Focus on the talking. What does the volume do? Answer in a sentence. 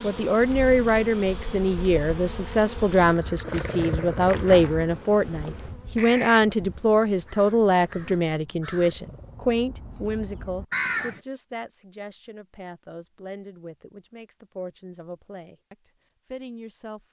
The loudness of the talking goes down.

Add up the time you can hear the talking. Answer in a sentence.
The talking can be heard for 17 seconds in total.